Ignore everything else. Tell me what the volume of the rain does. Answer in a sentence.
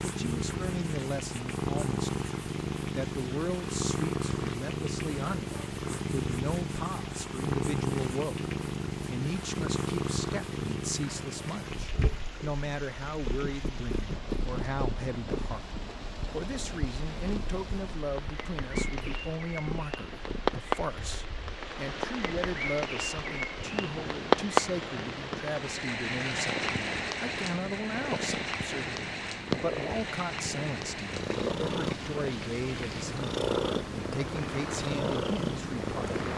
The volume of the rain goes up, then down.